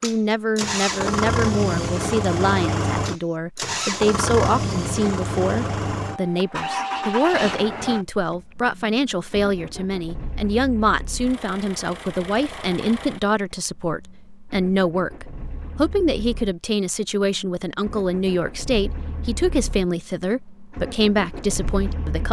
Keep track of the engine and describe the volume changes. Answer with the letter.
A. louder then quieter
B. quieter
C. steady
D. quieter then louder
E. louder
D.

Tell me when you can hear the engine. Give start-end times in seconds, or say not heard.
0.0-22.2.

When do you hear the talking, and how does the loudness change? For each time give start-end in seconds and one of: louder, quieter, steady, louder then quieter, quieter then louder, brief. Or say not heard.
0.0-22.2 steady.